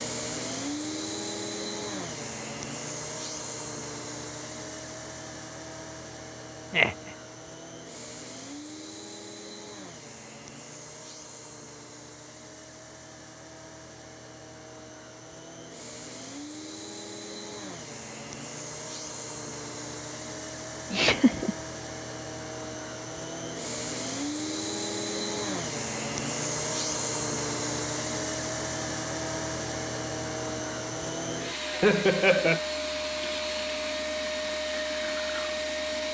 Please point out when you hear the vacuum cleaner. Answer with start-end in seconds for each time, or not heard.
0.0-36.0.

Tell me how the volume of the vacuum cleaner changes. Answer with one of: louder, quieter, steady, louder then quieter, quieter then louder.
quieter then louder.